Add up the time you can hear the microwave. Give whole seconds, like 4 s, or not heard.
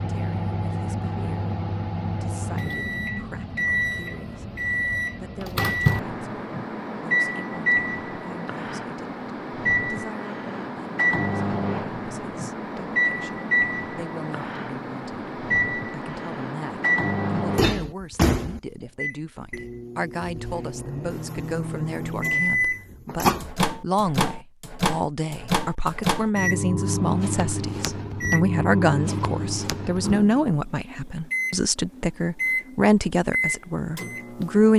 35 s.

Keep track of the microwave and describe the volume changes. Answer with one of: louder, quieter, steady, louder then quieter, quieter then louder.
steady.